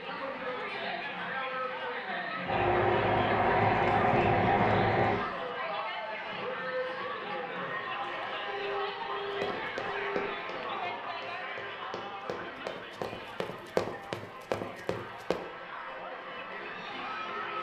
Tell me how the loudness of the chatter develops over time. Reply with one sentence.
The loudness of the chatter goes down.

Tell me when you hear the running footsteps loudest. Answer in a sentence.
The loudest moment of the running footsteps is at 14 seconds.